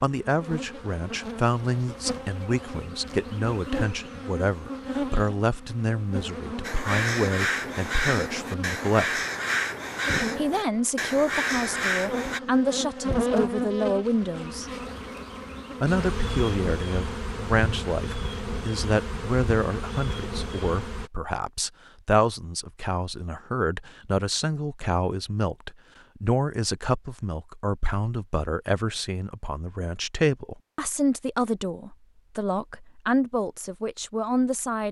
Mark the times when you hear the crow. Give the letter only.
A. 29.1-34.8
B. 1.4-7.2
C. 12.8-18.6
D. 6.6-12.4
D.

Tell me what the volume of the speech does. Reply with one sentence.
The loudness of the speech stays about the same.